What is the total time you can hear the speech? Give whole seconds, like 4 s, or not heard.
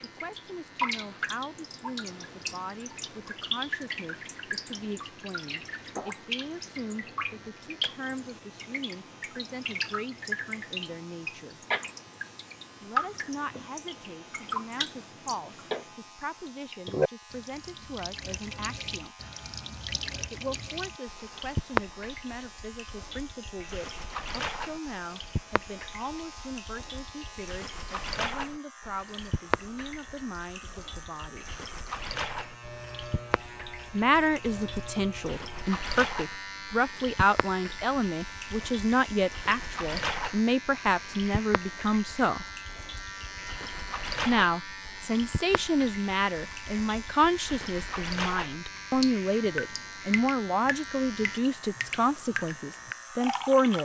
47 s.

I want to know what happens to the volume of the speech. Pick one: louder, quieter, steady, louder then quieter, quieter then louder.
louder.